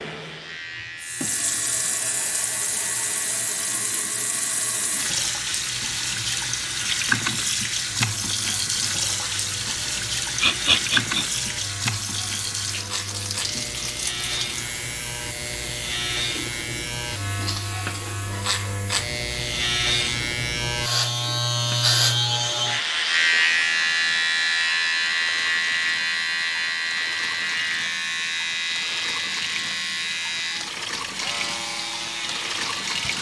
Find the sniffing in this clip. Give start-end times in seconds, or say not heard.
10.4-11.2.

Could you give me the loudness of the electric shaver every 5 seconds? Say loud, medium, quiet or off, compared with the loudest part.
quiet, quiet, quiet, medium, loud, loud, medium.